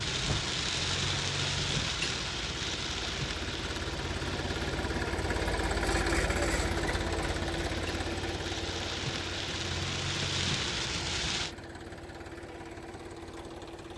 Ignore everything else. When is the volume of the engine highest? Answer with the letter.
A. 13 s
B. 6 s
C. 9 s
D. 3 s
B.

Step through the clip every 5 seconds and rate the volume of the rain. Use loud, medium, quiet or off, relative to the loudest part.
loud, medium, loud.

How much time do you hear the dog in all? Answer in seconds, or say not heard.
not heard.